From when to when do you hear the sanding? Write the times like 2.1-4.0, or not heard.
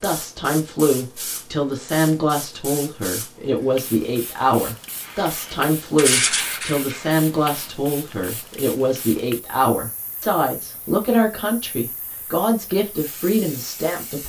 5.0-7.7.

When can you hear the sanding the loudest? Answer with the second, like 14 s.
6 s.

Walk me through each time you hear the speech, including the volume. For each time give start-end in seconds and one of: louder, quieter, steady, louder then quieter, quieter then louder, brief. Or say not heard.
0.0-14.2 steady.